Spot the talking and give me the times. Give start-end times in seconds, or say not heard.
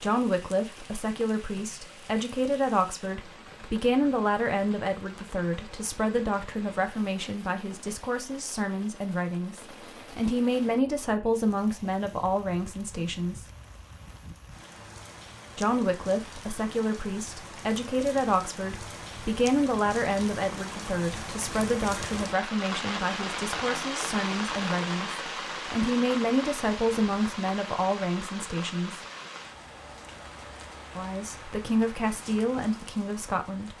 0.0-13.4, 15.6-29.0, 30.9-33.7.